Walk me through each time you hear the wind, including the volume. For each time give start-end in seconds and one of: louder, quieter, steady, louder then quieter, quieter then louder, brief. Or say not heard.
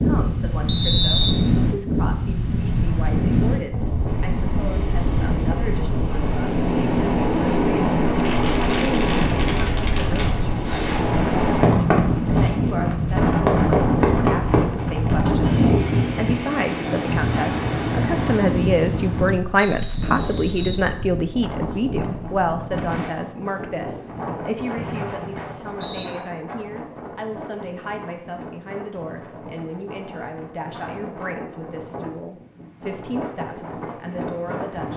0.0-34.9 quieter.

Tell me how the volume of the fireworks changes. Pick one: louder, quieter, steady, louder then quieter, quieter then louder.
louder then quieter.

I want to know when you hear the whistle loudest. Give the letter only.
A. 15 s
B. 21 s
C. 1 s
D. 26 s
C.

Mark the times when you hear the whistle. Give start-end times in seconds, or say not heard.
0.7-1.4, 19.6-20.9, 24.8-26.1.